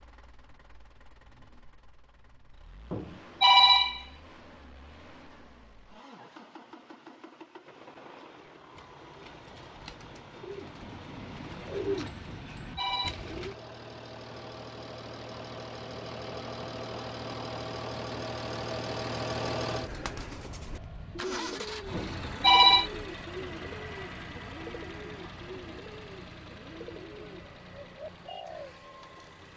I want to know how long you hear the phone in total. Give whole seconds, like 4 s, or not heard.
3 s.